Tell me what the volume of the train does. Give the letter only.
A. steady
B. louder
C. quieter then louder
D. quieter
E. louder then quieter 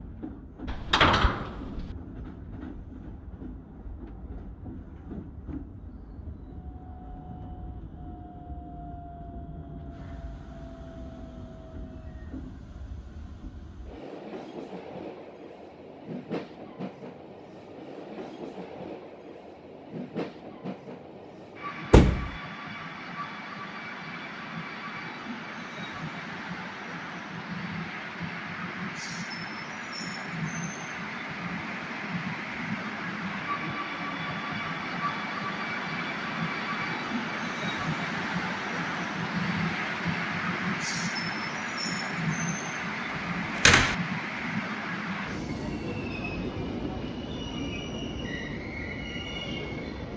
B.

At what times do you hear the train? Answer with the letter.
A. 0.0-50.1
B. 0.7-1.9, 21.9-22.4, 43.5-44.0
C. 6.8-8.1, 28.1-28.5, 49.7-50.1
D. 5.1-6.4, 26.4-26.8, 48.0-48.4
A.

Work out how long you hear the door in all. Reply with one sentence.
The door can be heard for 2 seconds in total.